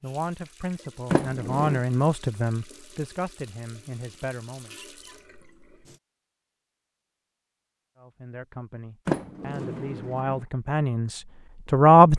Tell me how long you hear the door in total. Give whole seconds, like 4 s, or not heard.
2 s.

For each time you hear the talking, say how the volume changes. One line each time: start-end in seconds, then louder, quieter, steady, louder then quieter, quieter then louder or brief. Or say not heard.
0.0-4.8 louder then quieter
8.0-12.1 louder then quieter.